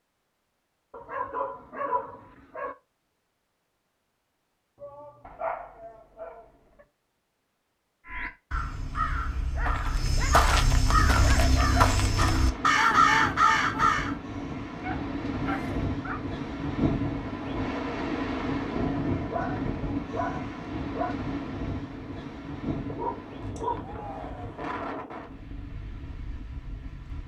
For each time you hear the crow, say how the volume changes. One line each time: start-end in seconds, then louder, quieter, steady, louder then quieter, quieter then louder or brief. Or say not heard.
8.1-14.2 louder.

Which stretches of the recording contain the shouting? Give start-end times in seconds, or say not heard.
4.8-6.7, 15.4-15.8, 23.8-24.6.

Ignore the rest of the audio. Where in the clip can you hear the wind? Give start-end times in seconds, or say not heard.
10.8-27.2.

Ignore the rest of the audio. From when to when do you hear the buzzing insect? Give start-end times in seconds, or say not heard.
not heard.